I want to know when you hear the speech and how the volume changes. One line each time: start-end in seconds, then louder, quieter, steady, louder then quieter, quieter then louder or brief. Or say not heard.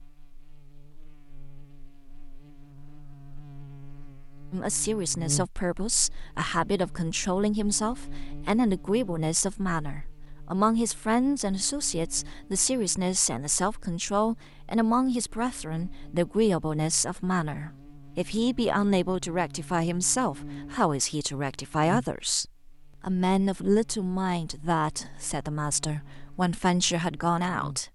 4.5-27.9 steady.